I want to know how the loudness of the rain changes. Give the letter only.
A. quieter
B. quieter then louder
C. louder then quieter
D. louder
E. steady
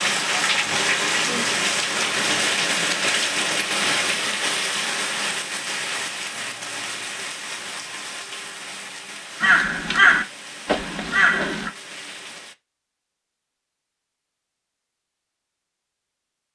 A.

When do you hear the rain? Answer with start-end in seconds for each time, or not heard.
0.0-12.6.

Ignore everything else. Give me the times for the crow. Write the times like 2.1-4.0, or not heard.
9.4-11.7.